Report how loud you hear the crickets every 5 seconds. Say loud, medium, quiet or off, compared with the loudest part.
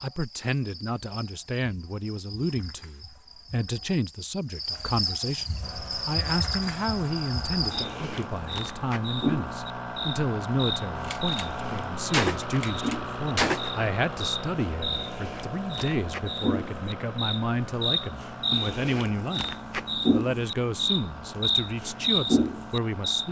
quiet, medium, medium, medium, loud.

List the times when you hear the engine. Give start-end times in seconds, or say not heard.
5.6-23.2.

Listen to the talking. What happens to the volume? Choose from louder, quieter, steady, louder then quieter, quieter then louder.
steady.